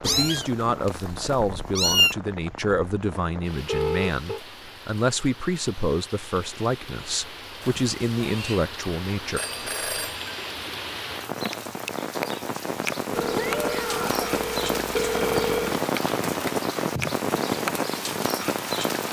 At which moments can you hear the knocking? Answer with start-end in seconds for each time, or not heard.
not heard.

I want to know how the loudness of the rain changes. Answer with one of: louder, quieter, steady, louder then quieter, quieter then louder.
louder.